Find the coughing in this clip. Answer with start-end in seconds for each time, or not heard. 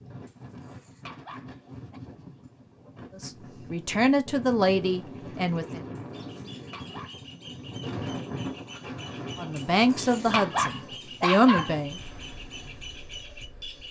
not heard.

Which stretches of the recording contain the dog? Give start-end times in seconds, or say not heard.
0.2-2.0, 6.0-7.3, 9.6-11.8.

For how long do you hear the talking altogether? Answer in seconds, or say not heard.
5 s.